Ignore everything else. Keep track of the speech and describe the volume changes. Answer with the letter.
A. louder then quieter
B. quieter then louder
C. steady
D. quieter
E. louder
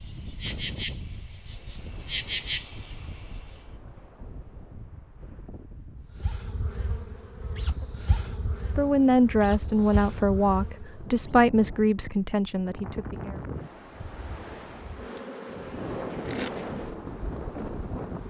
D.